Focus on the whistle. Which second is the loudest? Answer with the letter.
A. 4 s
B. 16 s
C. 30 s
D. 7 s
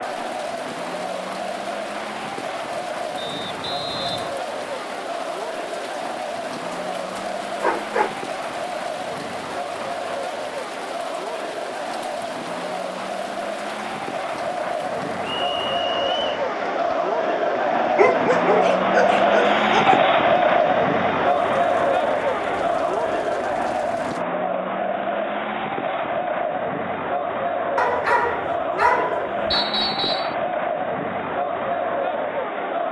C.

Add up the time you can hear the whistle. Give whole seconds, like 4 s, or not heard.
3 s.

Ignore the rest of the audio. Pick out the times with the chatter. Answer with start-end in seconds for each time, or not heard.
0.0-32.8.